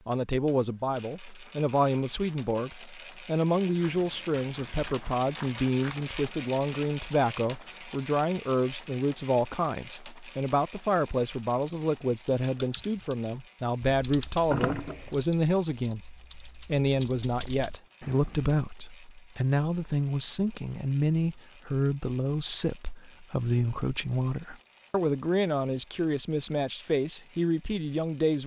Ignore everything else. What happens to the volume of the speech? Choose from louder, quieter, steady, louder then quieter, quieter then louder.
steady.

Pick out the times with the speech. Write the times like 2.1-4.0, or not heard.
0.1-28.4.